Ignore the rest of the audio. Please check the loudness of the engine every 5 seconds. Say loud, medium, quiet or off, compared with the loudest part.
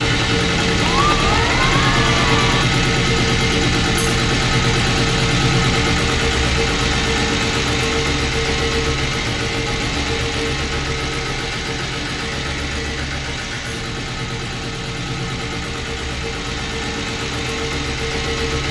loud, loud, medium, medium.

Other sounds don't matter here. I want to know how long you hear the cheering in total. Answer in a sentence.
You can hear the cheering for 2 seconds altogether.